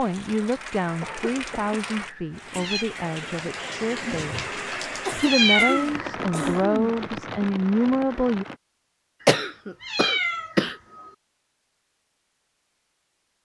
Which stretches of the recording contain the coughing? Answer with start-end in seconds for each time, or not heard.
0.8-1.8, 5.0-6.9, 9.2-10.8.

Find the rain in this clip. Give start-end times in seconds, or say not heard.
0.0-8.6.